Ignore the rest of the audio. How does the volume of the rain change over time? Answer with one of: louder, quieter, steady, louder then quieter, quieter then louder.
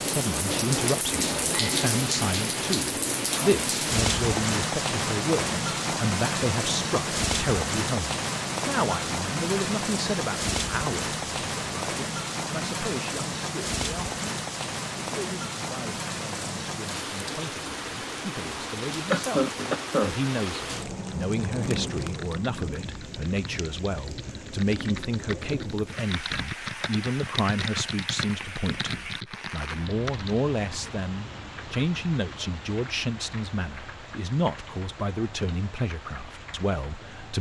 quieter.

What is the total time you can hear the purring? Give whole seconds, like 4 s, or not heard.
not heard.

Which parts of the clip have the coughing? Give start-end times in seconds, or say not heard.
19.1-20.1.